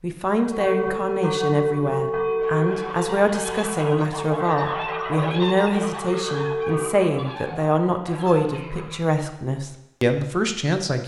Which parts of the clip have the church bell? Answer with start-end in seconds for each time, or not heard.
0.3-7.0.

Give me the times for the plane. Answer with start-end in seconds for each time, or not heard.
not heard.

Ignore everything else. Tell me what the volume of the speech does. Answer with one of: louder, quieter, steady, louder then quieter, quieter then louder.
steady.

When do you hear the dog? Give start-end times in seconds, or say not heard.
not heard.